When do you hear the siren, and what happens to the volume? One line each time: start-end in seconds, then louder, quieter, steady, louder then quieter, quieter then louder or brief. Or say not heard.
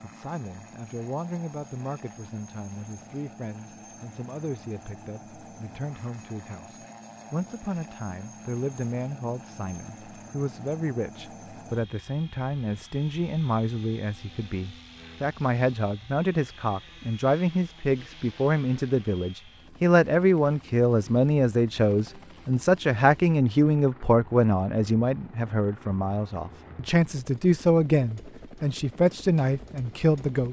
not heard.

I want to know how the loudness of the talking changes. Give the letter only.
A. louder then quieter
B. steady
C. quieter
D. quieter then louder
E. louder
E.